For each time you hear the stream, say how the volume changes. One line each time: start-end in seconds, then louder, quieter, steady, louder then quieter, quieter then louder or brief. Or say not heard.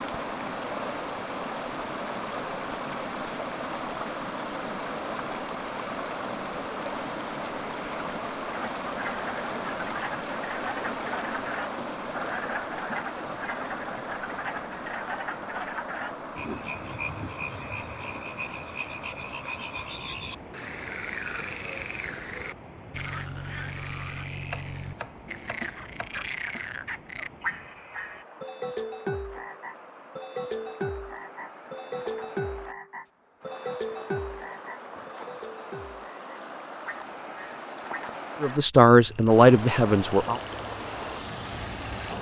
0.0-42.1 quieter then louder.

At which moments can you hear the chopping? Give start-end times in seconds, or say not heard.
24.5-26.2.